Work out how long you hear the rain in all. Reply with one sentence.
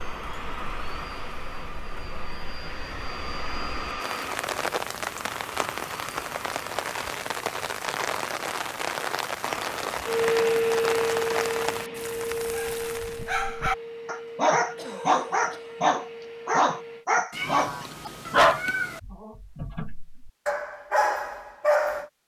The rain can be heard for 13 seconds in total.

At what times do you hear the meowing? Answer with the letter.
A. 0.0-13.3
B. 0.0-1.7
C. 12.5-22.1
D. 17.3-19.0
D.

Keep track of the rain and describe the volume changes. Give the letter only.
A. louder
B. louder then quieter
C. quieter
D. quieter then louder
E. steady
A.